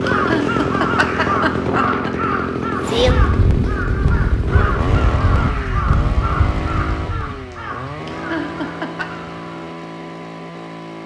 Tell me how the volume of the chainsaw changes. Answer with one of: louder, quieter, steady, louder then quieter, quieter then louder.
quieter.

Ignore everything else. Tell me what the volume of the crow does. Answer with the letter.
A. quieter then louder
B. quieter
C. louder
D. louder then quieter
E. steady
B.